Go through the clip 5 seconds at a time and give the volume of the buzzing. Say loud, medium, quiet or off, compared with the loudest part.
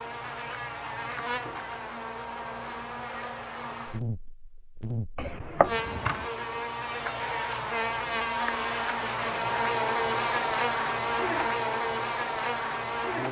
medium, loud, loud.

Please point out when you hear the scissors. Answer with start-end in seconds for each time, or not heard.
5.2-6.3.